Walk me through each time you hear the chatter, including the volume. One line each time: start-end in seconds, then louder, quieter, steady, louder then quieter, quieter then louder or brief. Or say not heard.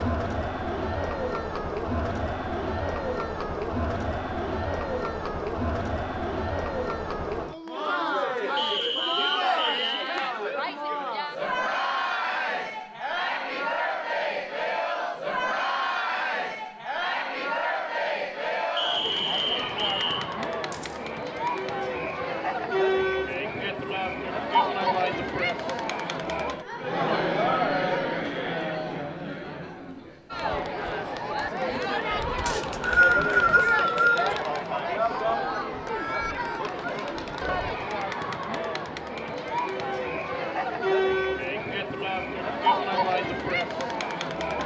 0.0-44.6 steady.